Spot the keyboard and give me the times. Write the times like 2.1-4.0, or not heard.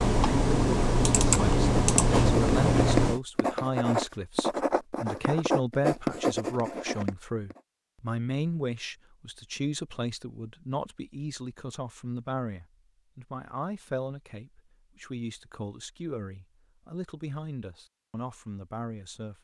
0.0-3.2.